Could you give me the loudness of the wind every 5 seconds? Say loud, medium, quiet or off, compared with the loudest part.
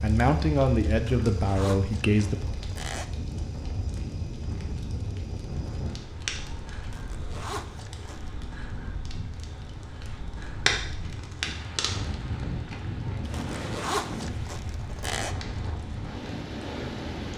loud, medium, loud, loud.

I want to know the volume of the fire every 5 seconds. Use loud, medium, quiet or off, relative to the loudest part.
medium, medium, loud, medium.